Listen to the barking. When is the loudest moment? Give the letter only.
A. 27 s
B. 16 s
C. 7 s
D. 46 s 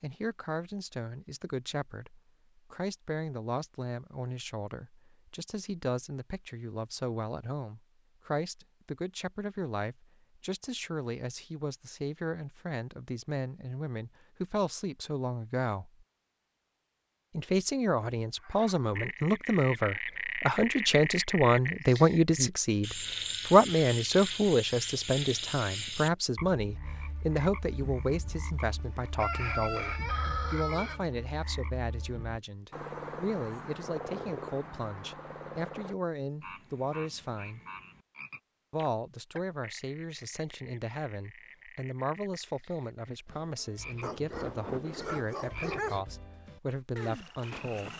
D.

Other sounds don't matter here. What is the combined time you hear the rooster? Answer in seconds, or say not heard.
2 s.